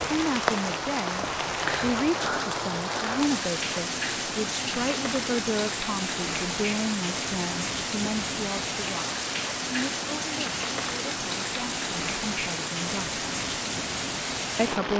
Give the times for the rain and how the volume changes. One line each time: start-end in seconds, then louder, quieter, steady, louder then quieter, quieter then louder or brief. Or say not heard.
0.0-14.9 steady.